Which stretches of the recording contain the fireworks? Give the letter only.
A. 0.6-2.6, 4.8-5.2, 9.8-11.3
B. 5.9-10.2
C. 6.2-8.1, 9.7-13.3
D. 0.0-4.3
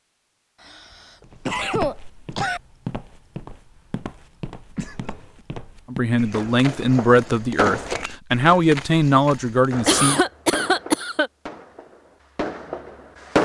C.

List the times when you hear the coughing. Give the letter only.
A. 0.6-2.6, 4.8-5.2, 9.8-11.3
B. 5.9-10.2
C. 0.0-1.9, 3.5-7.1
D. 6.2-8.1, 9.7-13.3
A.